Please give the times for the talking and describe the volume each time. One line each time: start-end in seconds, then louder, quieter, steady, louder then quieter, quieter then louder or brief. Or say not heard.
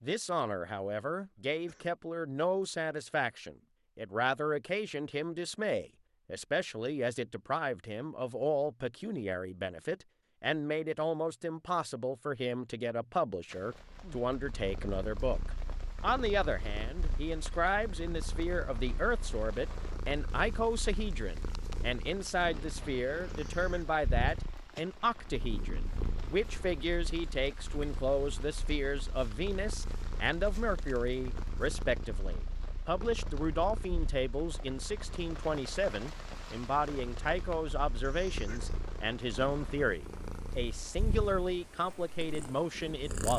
0.0-43.3 steady.